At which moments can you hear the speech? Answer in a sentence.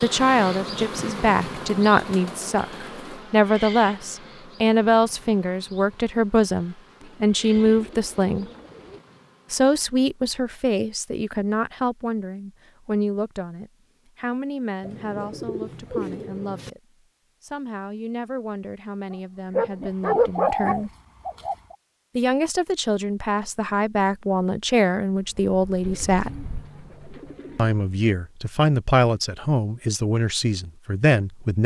The speech can be heard from 0.0 to 8.4 s, from 9.5 to 16.8 s, from 17.4 to 20.9 s, from 22.1 to 26.4 s and from 27.6 to 31.6 s.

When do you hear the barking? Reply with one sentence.
You can hear the barking from 19.1 to 20.8 s.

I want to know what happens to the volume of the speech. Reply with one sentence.
The loudness of the speech goes down, then up.